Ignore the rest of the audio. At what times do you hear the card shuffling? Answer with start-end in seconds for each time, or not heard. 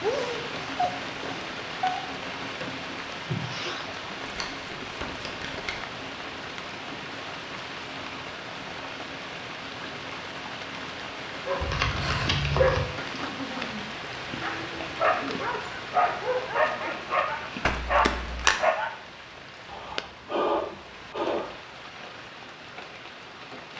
4.2-5.8, 11.6-12.8, 17.6-18.6.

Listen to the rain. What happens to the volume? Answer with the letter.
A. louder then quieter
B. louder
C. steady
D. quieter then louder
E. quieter
E.